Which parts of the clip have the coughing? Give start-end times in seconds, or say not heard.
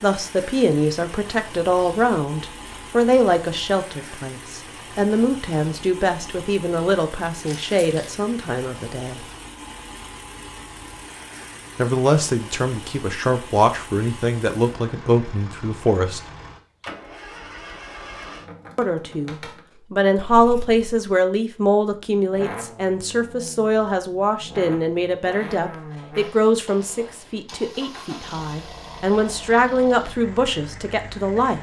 not heard.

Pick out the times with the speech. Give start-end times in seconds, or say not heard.
0.0-9.2, 11.8-16.2, 18.8-31.5.